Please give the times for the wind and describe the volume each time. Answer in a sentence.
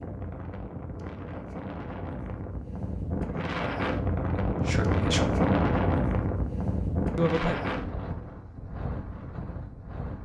You can hear the wind from 0.0 to 10.2 s, getting louder then quieter.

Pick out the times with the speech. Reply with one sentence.
The speech can be heard from 4.5 to 5.5 s and from 7.2 to 7.6 s.